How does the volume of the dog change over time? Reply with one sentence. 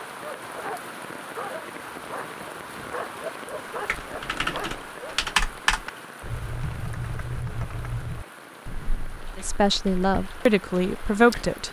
The loudness of the dog stays about the same.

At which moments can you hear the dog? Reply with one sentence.
You can hear the dog from 0.0 to 5.2 s.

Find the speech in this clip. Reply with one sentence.
The speech can be heard from 9.3 to 11.6 s.